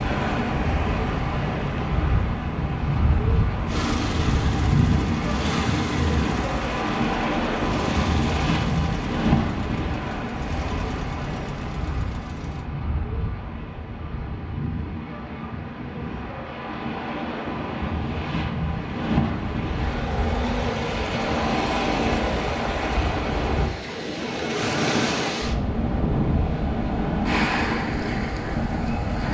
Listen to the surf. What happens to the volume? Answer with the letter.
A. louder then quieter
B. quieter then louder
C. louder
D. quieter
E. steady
B.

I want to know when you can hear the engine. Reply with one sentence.
You can hear the engine from 3.6 to 12.7 s.